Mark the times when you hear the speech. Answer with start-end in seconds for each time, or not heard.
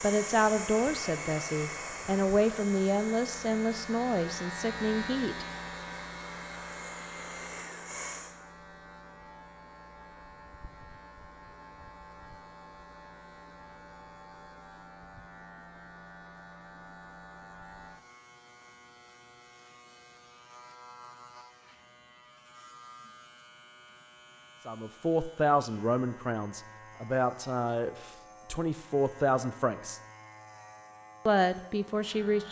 0.0-5.5, 24.6-30.0, 31.2-32.4.